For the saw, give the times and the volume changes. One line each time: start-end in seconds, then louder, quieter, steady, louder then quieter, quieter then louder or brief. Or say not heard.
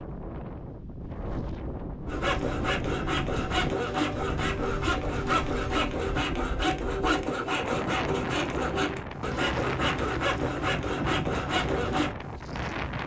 2.0-12.2 steady.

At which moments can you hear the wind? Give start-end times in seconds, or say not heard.
0.0-13.0.